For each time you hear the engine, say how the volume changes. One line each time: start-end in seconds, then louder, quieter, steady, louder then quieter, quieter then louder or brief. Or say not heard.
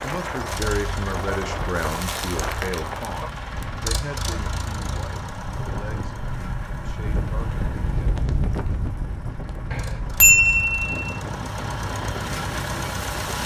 0.0-13.4 quieter then louder.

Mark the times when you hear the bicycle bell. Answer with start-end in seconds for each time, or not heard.
9.7-11.2.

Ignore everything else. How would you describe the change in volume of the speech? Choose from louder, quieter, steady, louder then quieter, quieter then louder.
quieter.